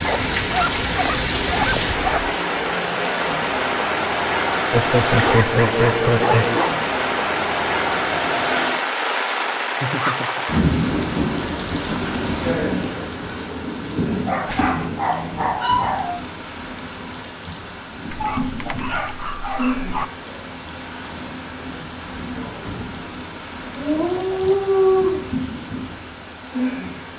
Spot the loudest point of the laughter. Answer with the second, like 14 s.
6 s.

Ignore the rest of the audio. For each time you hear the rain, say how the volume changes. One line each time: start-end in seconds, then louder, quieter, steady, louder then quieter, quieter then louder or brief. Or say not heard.
0.0-27.1 quieter.